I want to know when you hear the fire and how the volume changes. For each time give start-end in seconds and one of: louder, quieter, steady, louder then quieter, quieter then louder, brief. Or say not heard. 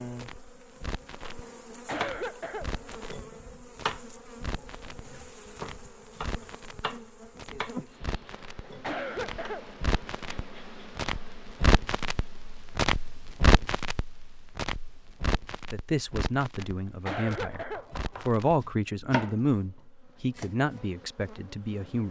0.0-18.6 louder then quieter.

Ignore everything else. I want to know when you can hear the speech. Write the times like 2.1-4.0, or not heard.
15.7-22.0.